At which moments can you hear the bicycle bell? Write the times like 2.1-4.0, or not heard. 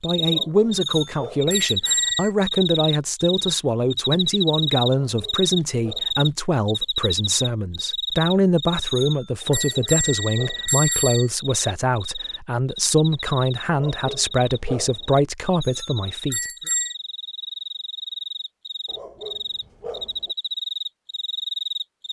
0.8-2.3, 8.8-11.3, 15.6-16.9.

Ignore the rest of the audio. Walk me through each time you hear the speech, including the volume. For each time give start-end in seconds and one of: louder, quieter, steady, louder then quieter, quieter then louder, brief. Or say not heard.
0.0-16.4 steady.